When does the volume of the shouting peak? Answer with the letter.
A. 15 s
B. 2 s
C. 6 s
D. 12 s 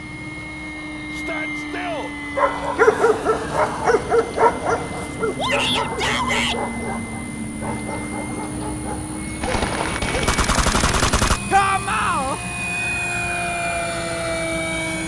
D.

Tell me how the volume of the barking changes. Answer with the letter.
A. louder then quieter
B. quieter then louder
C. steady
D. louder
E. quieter
E.